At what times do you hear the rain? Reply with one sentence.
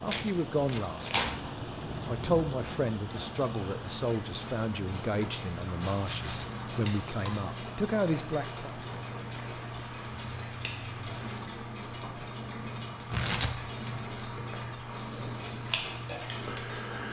The rain can be heard from 0.0 to 11.2 s.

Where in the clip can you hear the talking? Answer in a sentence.
The talking can be heard from 0.0 to 1.1 s and from 2.0 to 8.8 s.